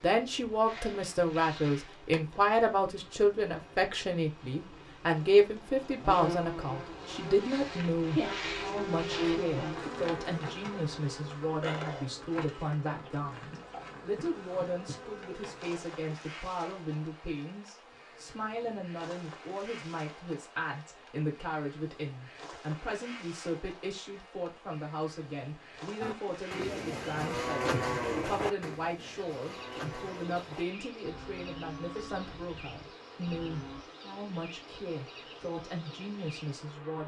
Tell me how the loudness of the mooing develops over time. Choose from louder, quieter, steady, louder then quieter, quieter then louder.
quieter.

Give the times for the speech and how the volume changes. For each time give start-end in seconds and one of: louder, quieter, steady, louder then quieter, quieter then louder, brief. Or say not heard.
0.0-37.0 quieter.